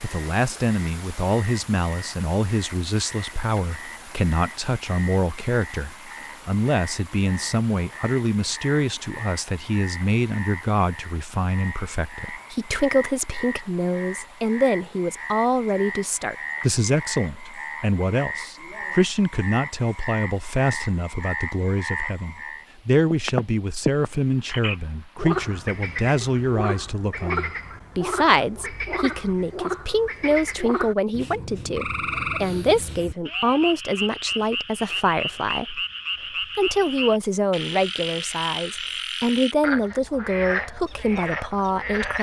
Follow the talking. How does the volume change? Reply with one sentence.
The volume of the talking stays about the same.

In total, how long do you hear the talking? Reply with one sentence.
The talking can be heard for 41 seconds in total.